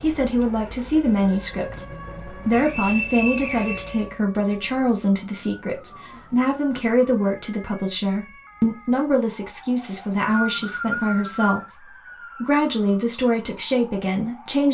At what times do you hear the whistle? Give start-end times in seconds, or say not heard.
2.5-4.5, 9.8-11.7.